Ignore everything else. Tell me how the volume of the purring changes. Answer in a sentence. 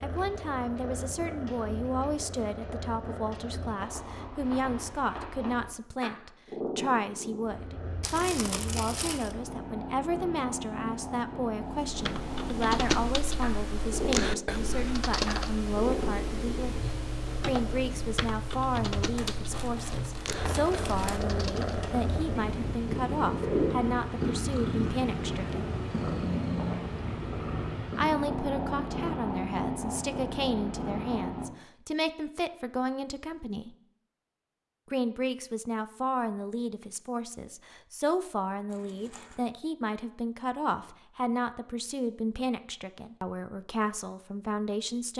The volume of the purring goes up.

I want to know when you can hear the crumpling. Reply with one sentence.
You can hear the crumpling from 8.0 to 9.3 s, from 19.1 to 21.2 s and from 38.7 to 39.4 s.